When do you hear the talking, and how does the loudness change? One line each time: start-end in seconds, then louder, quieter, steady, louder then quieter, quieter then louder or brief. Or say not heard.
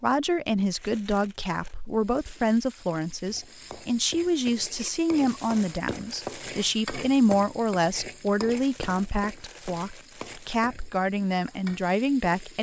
0.0-12.5 steady.